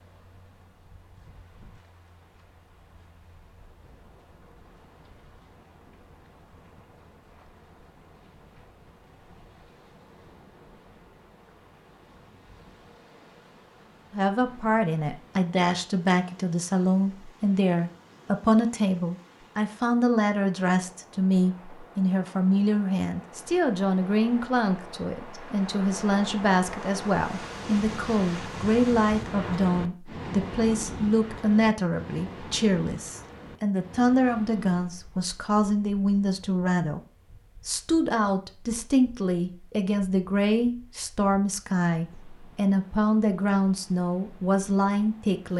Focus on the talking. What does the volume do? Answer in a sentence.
The volume of the talking stays about the same.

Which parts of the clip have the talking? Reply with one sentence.
You can hear the talking from 14.1 to 37.0 s and from 37.6 to 45.5 s.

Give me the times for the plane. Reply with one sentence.
The plane can't be heard in this clip.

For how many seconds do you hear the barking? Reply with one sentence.
The barking can't be heard in this clip.